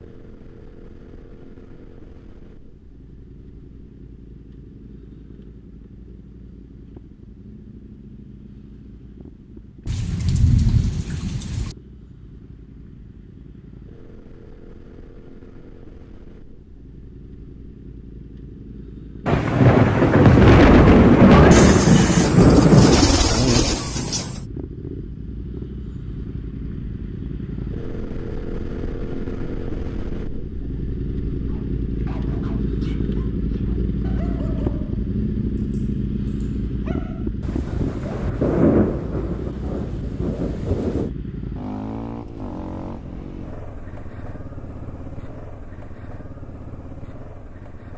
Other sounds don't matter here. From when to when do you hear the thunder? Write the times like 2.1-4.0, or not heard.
9.8-11.8, 19.2-23.1, 37.4-41.1.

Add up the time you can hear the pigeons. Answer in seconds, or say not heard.
3 s.